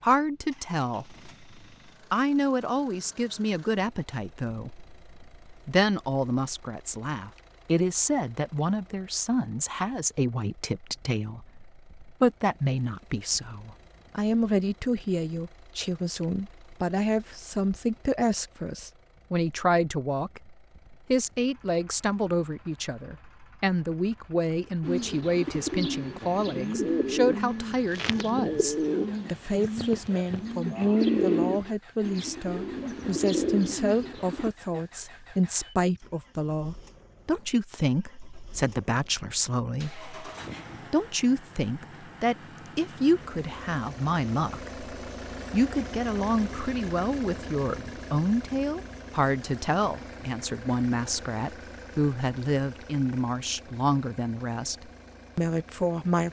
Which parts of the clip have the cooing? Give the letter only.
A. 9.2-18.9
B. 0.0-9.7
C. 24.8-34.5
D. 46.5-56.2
C.